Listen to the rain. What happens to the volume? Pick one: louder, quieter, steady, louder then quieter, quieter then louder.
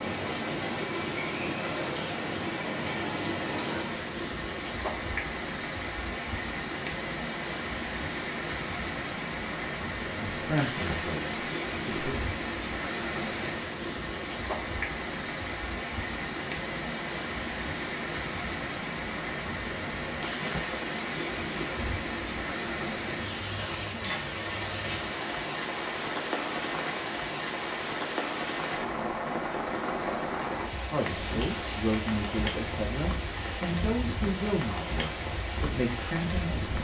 steady.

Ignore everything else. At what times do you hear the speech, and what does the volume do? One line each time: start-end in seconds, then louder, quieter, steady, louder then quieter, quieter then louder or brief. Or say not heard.
10.2-12.2 brief
30.9-36.7 steady.